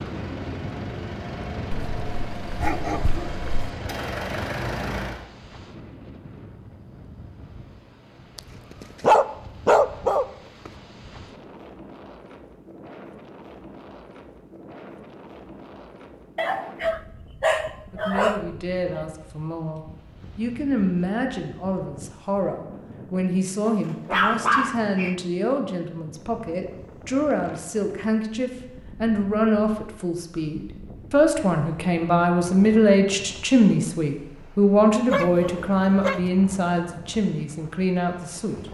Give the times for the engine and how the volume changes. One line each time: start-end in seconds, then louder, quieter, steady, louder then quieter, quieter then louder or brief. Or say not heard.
0.0-5.2 louder.